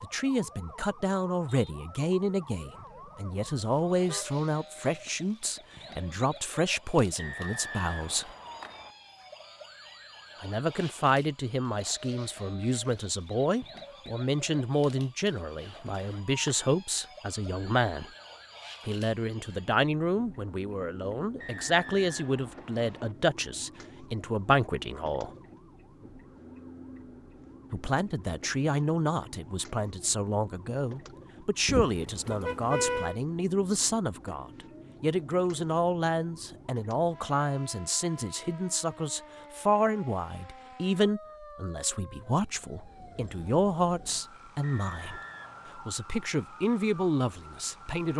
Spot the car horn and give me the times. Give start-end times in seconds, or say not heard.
3.6-4.2, 31.6-33.1.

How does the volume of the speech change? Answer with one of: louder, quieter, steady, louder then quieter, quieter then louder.
steady.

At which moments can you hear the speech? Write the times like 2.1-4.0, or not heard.
0.0-8.3, 10.4-18.1, 18.9-25.3, 27.7-48.1.